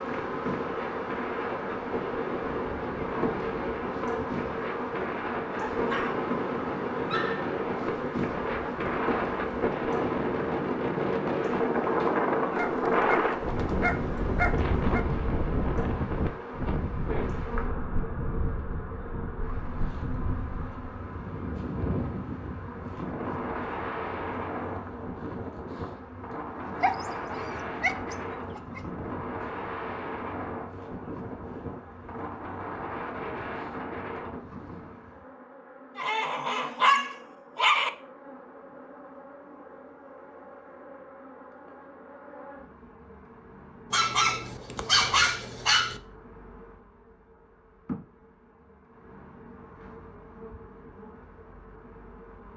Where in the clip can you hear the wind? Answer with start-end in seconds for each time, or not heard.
0.0-35.0.